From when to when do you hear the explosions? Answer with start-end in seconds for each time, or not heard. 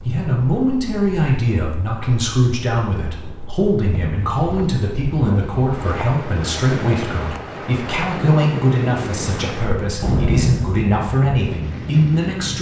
10.0-10.9.